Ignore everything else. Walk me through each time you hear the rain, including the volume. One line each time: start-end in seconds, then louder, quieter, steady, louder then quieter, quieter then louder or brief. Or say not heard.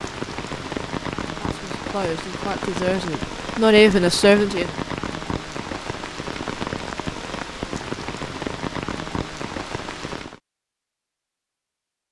0.0-10.4 steady.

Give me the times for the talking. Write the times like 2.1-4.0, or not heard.
1.4-4.7.